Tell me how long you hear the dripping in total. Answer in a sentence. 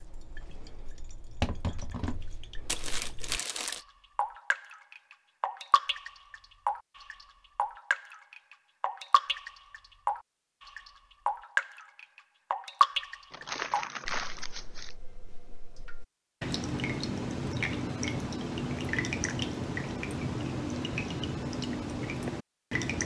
You can hear the dripping for 23 seconds altogether.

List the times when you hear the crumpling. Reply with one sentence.
The crumpling can be heard from 2.6 to 3.8 s and from 13.3 to 14.9 s.